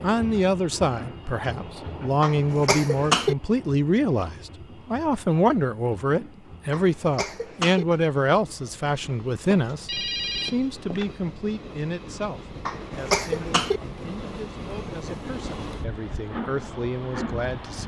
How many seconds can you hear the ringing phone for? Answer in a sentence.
You can hear the ringing phone for 2 seconds altogether.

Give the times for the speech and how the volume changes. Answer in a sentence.
The speech can be heard from 0.0 to 17.8 s, getting quieter.